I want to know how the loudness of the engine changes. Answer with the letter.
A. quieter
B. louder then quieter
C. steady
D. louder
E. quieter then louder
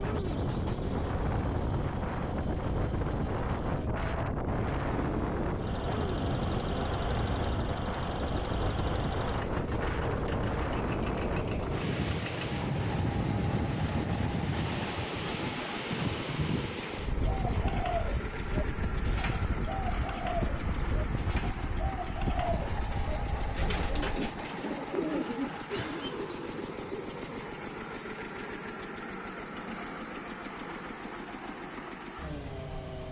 C.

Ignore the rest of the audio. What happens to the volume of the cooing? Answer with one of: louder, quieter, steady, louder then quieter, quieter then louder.
steady.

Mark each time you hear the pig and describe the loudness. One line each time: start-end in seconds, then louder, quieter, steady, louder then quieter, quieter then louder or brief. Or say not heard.
not heard.